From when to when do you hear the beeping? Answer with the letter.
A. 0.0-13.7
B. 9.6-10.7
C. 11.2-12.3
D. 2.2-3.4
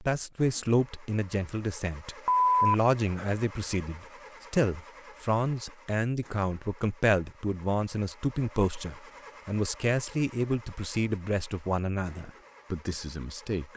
D.